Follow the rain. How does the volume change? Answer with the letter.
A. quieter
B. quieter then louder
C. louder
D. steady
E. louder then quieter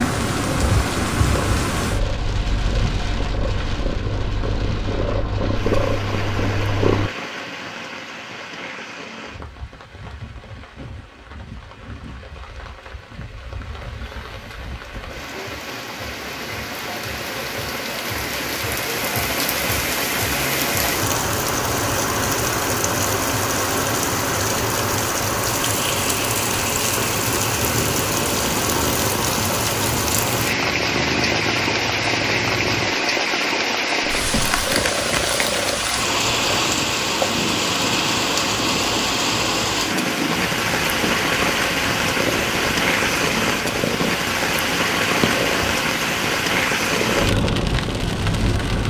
C.